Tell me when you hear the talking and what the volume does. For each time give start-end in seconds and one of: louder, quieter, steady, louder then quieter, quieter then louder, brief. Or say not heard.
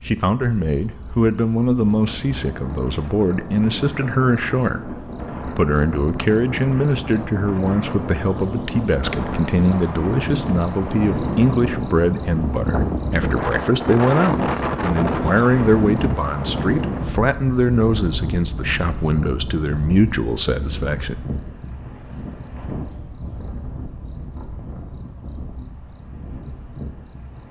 0.1-21.2 steady.